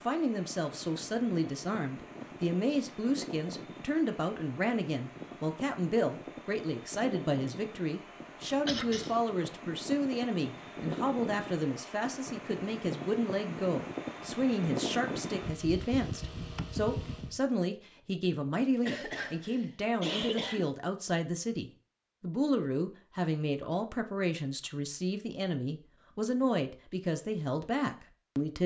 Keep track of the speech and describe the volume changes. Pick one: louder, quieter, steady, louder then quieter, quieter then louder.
steady.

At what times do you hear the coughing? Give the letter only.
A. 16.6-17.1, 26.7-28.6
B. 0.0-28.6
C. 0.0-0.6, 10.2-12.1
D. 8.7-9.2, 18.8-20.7
D.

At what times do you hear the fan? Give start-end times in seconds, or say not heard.
0.0-17.4.